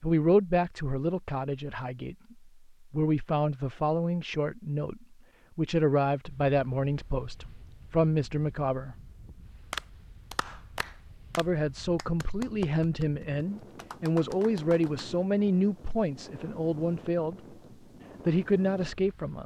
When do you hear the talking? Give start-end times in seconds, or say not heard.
0.0-8.9, 11.3-17.4, 18.2-19.4.